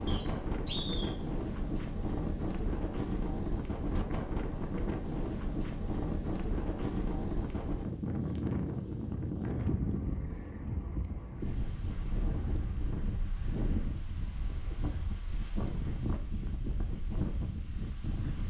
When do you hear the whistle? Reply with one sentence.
The whistle can be heard from 0.1 to 1.1 s.